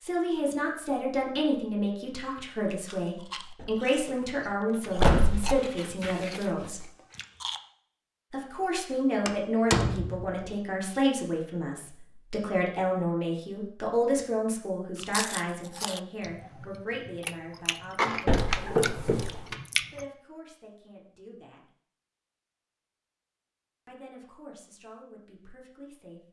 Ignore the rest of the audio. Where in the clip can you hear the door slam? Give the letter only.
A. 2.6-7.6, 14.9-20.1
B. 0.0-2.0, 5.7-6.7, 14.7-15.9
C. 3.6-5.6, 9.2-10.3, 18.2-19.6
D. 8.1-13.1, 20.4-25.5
C.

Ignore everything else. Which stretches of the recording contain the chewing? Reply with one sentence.
You can hear the chewing from 2.6 to 7.6 s and from 14.9 to 20.1 s.